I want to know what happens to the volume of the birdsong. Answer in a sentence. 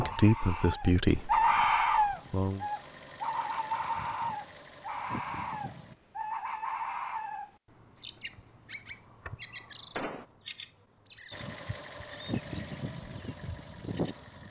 The loudness of the birdsong goes down.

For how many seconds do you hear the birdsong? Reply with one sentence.
You can hear the birdsong for 14 seconds altogether.